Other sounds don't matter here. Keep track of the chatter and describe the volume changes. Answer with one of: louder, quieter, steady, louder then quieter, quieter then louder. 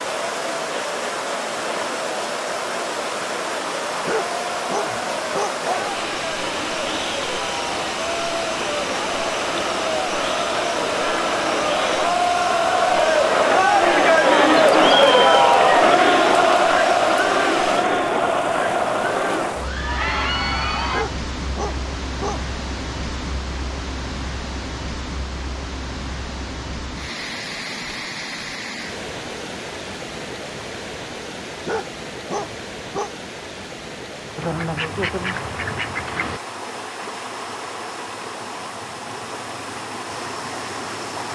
louder then quieter.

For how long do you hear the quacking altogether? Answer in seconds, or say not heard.
2 s.